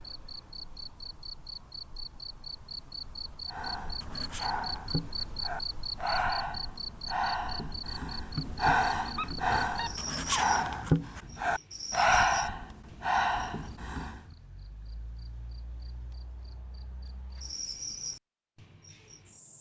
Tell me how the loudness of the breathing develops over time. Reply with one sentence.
The volume of the breathing goes up.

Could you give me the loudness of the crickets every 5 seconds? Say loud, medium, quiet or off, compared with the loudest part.
loud, loud, loud, medium.